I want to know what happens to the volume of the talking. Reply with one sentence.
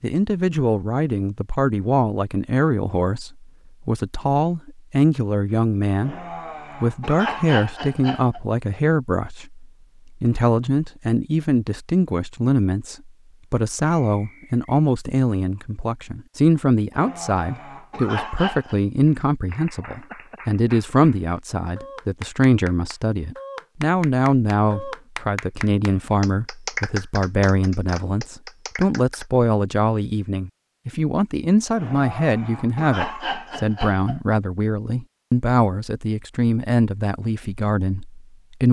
The loudness of the talking stays about the same.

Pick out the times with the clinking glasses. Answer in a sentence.
The clinking glasses can't be heard in this clip.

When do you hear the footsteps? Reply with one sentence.
You can't hear the footsteps here.